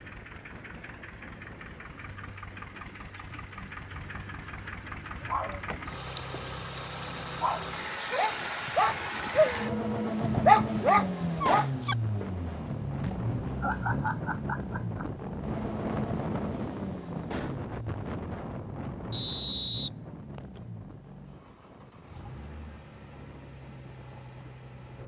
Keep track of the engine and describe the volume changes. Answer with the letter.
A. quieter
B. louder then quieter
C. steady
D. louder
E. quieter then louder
B.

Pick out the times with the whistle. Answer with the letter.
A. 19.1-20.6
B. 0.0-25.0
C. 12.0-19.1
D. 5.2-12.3
A.